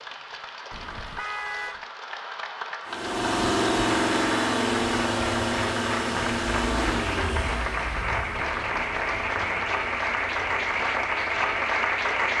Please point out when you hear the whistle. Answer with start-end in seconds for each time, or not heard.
not heard.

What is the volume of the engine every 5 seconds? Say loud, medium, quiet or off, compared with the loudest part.
loud, medium, quiet.